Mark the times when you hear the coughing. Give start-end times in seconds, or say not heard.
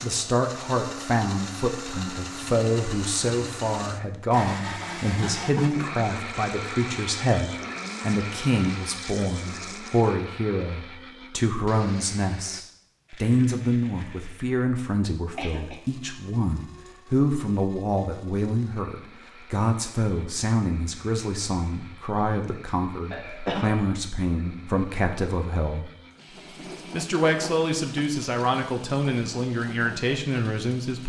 5.2-5.8, 15.3-15.8, 23.1-23.9.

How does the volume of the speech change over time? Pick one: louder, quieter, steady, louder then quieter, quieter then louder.
steady.